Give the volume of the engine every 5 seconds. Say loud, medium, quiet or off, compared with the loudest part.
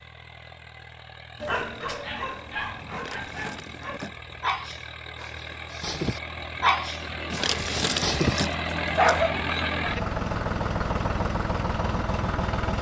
quiet, loud, loud.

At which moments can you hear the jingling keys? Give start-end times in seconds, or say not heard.
2.9-4.8, 7.3-9.2.